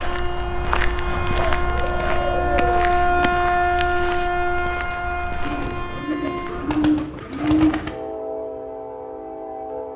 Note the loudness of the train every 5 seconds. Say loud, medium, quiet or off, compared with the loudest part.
loud, medium.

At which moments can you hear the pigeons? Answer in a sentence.
You can hear the pigeons from 1.4 to 3.3 s and from 5.5 to 8.0 s.